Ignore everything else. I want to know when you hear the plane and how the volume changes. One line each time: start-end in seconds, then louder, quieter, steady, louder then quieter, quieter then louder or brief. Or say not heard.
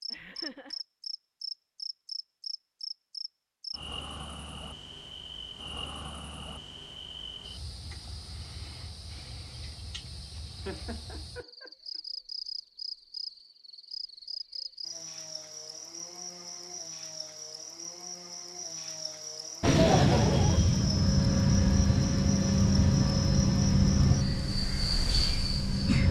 19.6-26.0 quieter.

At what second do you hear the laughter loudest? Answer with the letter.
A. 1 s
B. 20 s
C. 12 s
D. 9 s
B.